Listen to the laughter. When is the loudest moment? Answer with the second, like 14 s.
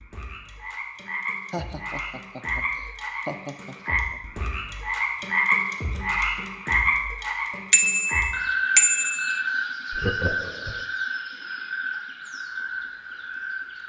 10 s.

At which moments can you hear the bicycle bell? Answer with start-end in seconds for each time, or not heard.
7.7-9.4.